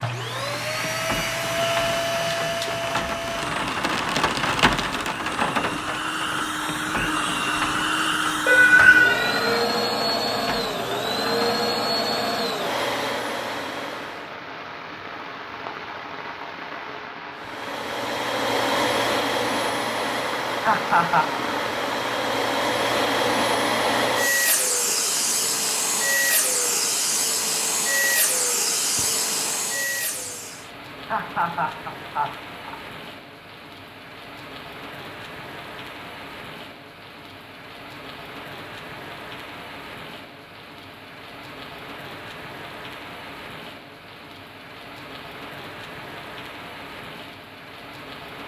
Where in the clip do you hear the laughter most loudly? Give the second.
21 s.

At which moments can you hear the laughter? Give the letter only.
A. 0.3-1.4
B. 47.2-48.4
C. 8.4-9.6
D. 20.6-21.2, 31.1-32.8
D.